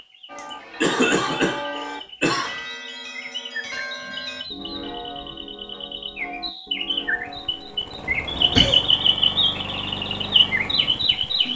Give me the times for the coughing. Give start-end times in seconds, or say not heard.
0.3-2.5, 8.1-8.8.